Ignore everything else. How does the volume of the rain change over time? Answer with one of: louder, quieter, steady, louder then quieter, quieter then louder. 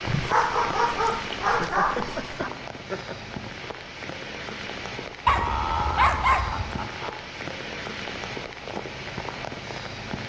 steady.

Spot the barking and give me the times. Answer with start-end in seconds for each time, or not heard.
0.1-2.5, 5.2-6.8.